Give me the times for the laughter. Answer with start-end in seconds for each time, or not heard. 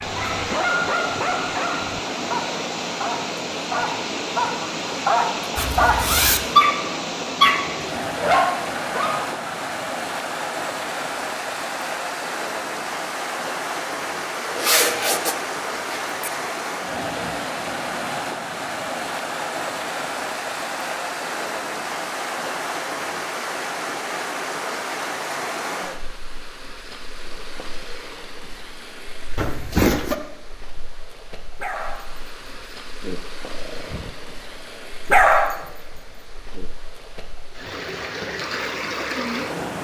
not heard.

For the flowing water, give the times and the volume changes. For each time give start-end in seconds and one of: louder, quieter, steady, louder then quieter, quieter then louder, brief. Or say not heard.
0.0-39.7 quieter.